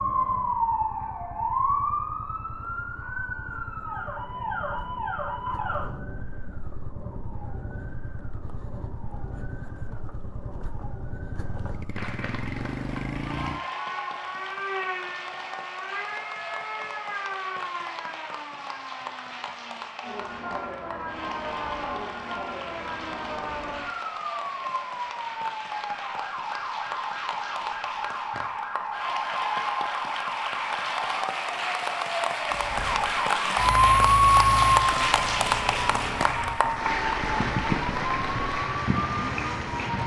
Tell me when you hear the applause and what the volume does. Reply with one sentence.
You can hear the applause from 11.9 to 40.0 s, getting louder.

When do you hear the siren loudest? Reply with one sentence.
The volume of the siren peaks at 34 seconds.